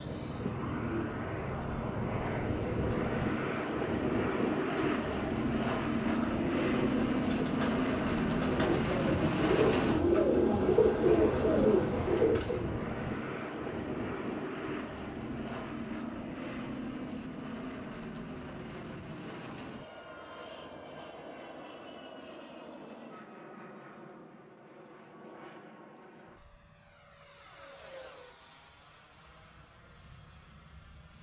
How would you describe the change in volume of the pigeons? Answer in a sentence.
The volume of the pigeons goes up.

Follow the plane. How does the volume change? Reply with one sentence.
The loudness of the plane goes down.